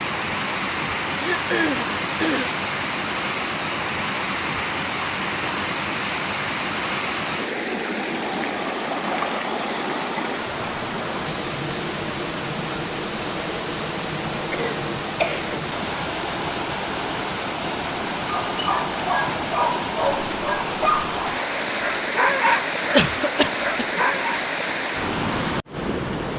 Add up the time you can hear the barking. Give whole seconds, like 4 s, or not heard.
6 s.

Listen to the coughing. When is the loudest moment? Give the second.
23 s.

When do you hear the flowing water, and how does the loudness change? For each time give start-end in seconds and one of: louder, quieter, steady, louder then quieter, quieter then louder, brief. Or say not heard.
0.0-26.3 steady.